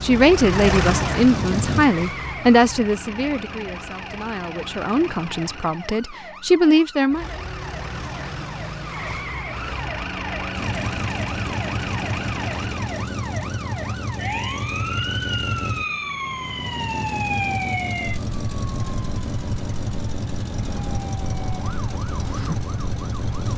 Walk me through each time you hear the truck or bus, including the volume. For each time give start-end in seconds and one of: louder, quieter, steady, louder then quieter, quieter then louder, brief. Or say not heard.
0.0-1.9 brief
10.5-23.5 steady.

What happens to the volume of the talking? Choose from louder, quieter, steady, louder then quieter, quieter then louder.
quieter then louder.